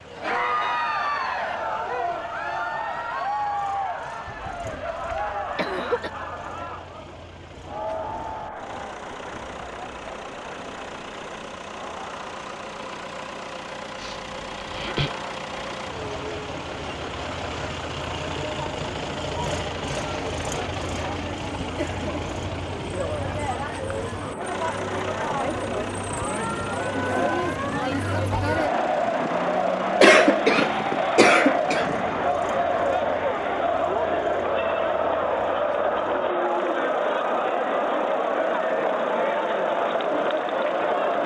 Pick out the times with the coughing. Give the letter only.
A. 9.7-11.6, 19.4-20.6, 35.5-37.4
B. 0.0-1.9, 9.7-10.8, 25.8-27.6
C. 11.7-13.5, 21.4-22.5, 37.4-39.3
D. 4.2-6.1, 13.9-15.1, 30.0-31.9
D.